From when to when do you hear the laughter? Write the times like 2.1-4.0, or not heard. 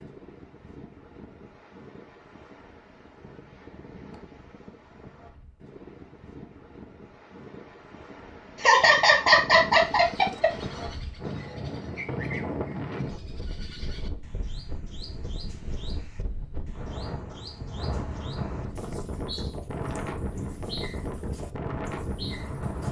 8.6-10.5.